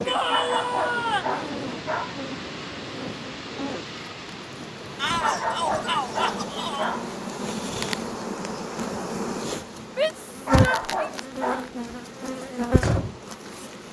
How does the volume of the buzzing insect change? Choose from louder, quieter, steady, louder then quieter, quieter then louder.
louder.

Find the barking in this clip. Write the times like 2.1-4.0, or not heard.
0.2-2.1, 5.2-7.0, 10.4-11.7.